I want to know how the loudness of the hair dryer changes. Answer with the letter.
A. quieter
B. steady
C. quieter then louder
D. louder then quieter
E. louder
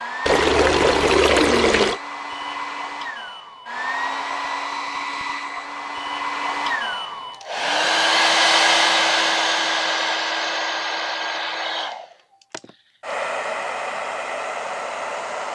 D.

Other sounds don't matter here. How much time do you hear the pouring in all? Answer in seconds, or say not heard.
2 s.